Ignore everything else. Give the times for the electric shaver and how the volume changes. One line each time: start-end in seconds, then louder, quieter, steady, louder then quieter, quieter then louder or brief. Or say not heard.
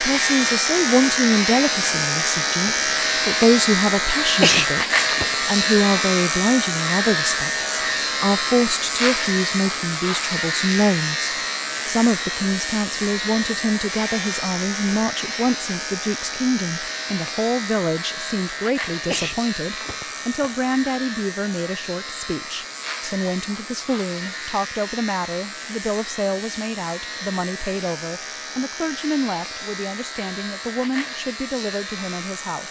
0.0-32.6 quieter.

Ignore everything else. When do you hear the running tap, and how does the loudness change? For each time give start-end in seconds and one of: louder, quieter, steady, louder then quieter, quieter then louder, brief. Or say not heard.
not heard.